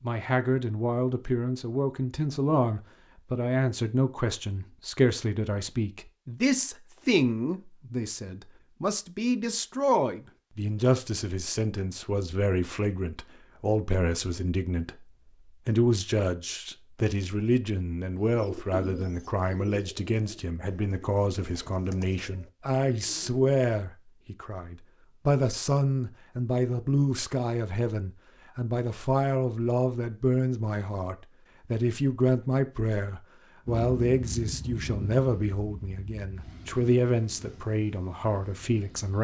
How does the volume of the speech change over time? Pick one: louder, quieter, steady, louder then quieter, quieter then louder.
steady.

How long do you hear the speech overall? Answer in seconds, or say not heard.
39 s.